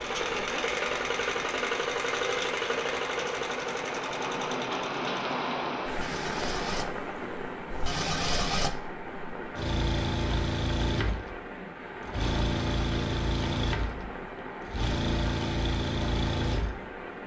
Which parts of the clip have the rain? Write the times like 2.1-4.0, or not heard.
0.0-17.2.